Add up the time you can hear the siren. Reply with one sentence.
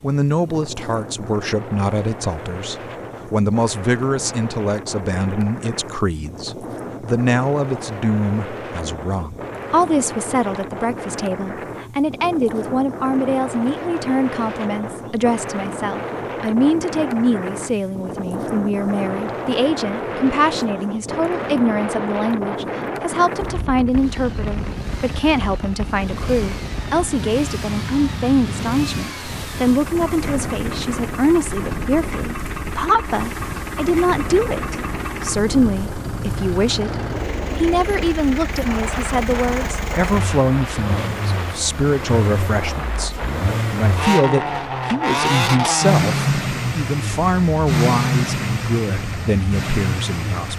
You can't hear the siren here.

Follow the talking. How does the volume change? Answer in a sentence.
The loudness of the talking stays about the same.